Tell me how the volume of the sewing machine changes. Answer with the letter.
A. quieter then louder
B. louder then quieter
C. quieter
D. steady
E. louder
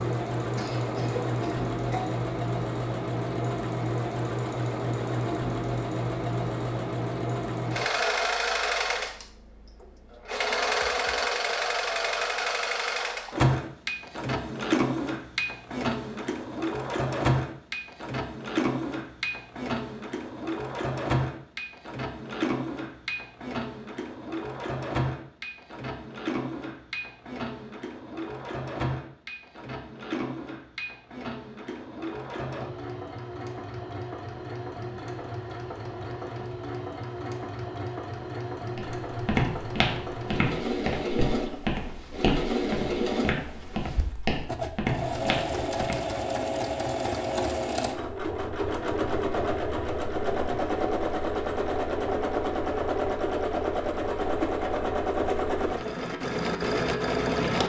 A.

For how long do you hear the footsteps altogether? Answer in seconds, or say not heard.
7 s.